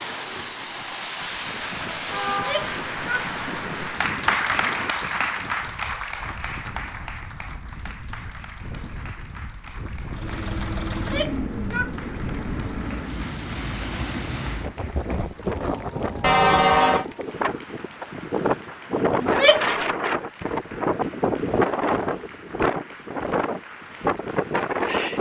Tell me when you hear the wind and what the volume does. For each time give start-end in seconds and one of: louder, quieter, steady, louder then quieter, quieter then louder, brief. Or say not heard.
0.0-25.1 quieter then louder.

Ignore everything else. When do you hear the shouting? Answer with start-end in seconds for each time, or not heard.
2.3-3.2, 10.9-11.9, 19.2-19.8.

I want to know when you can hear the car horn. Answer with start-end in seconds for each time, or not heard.
2.0-2.7, 16.2-17.1.